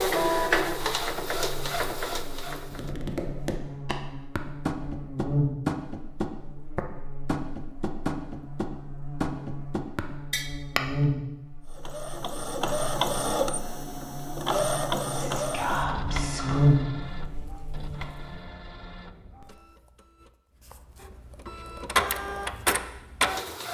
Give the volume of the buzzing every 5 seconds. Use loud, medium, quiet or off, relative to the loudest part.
quiet, medium, medium, loud, off.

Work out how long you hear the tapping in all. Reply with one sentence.
You can hear the tapping for 8 seconds altogether.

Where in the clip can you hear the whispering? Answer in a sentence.
You can hear the whispering from 15.1 to 16.6 s.